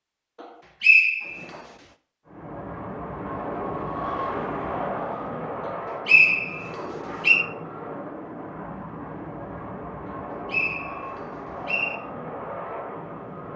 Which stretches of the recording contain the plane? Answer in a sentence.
The plane can be heard from 2.2 to 13.5 s.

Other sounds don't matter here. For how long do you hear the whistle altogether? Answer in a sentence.
You can hear the whistle for 5 seconds altogether.